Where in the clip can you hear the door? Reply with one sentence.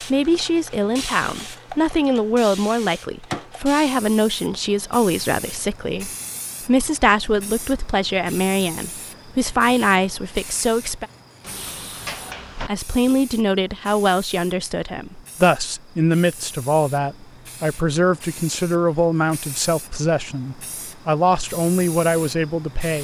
You can hear the door from 11.4 to 12.7 s.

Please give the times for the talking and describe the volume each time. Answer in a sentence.
The talking can be heard from 0.0 to 11.1 s, at a steady volume; and from 12.7 to 22.9 s, at a steady volume.